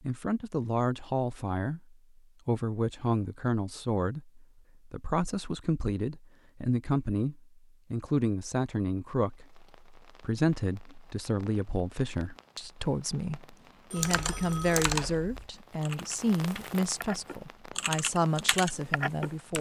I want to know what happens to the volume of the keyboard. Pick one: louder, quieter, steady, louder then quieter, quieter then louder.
quieter then louder.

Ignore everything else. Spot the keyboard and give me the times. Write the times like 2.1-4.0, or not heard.
13.9-19.5.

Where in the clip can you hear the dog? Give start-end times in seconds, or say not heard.
not heard.